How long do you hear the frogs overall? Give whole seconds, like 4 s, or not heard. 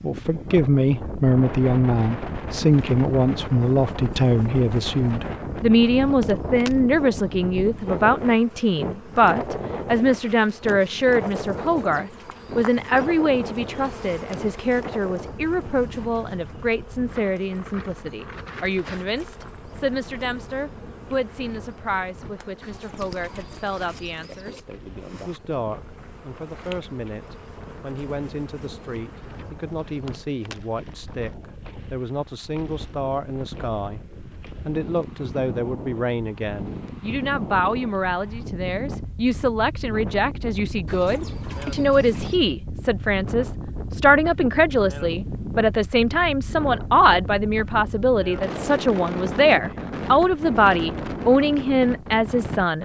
not heard.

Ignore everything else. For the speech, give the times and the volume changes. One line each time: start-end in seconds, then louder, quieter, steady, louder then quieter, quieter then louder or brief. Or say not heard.
0.0-34.0 quieter
34.6-52.8 louder.